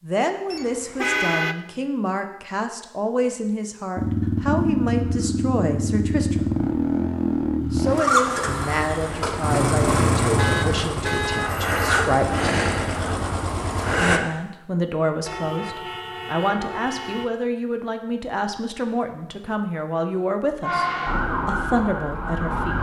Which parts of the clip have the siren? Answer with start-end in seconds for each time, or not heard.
20.6-22.7.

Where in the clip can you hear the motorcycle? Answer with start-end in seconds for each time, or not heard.
4.0-14.2.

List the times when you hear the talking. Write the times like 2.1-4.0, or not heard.
0.0-6.5, 7.7-12.5, 14.0-22.7.